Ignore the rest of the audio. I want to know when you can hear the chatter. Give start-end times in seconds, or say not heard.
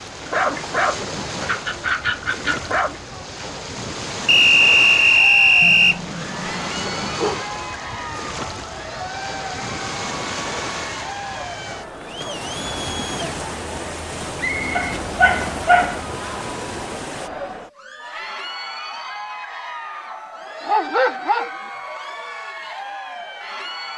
4.6-23.9.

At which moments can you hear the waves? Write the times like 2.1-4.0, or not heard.
0.0-17.3.